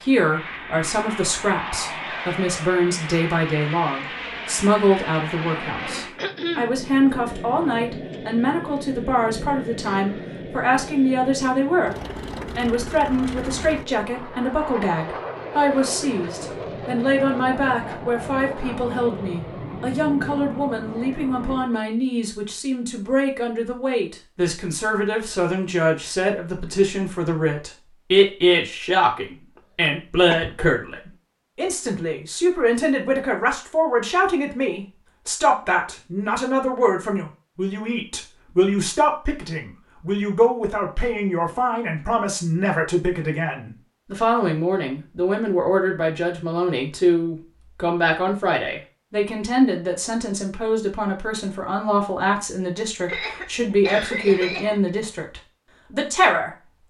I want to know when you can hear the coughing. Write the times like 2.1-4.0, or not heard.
6.2-6.8, 29.8-30.7, 53.0-54.9.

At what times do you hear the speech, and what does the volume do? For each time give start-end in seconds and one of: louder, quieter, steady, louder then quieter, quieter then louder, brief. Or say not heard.
0.0-56.5 steady.